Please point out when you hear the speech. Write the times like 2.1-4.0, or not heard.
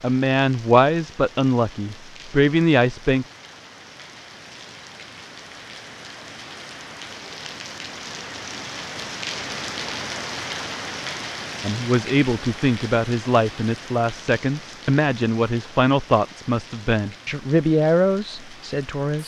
0.0-3.2, 11.6-19.2.